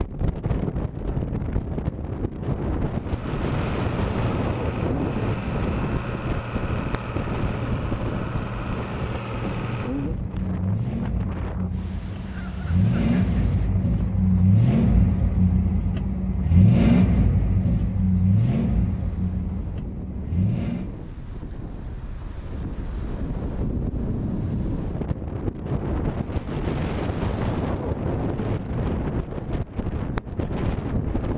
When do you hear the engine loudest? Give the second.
17 s.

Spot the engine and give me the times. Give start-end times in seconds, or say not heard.
3.0-21.1.